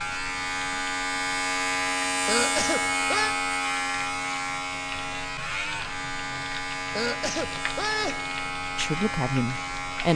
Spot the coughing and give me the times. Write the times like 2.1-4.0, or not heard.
2.2-3.4, 6.9-8.3.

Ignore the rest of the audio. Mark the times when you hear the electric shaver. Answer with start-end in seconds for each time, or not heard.
0.0-10.1.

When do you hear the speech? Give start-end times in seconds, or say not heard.
8.7-10.1.